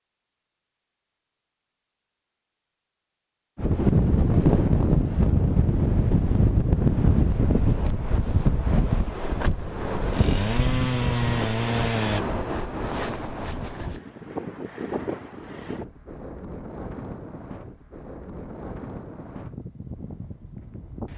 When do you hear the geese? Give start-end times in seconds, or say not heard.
not heard.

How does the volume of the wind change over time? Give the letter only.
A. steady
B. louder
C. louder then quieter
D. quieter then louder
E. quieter
E.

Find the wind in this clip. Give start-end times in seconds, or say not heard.
3.5-21.1.